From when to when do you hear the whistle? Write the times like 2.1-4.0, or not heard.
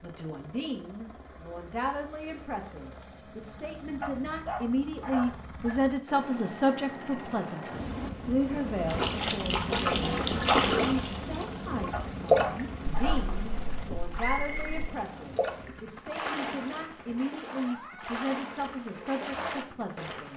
14.2-14.8.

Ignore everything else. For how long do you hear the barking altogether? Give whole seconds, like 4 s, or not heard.
3 s.